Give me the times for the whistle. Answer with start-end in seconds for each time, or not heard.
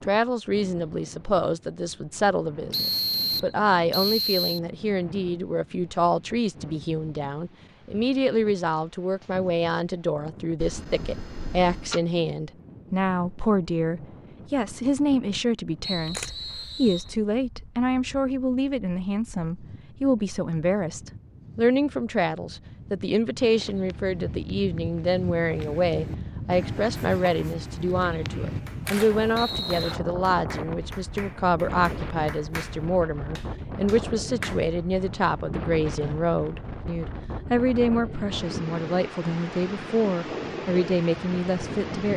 2.7-4.6, 15.8-17.1, 28.3-29.9.